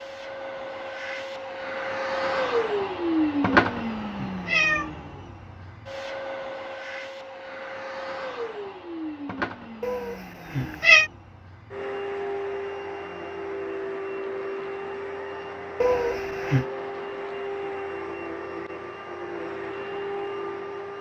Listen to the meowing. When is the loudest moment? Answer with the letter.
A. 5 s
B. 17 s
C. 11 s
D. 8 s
C.